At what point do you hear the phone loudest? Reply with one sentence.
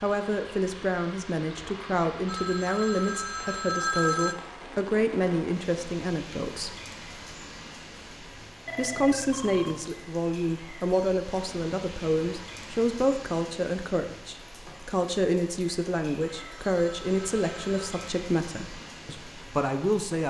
The volume of the phone peaks at 4 seconds.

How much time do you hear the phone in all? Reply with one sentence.
You can hear the phone for 5 seconds altogether.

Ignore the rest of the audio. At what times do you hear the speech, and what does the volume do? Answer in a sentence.
The speech can be heard from 0.0 to 6.8 s, at a steady volume; and from 8.8 to 20.2 s, at a steady volume.